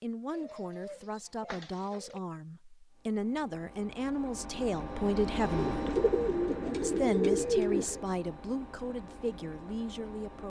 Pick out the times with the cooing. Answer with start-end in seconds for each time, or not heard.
0.3-2.2, 5.5-8.1.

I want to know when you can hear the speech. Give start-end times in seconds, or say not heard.
0.0-5.9, 6.8-10.4.